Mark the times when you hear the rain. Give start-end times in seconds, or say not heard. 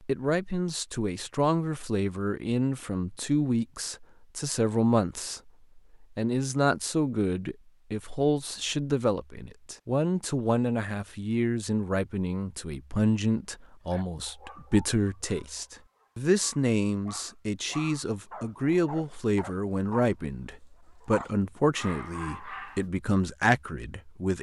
not heard.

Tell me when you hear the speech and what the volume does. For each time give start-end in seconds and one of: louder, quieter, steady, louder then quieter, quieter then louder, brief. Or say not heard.
0.0-24.3 steady.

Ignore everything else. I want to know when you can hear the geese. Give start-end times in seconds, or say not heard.
not heard.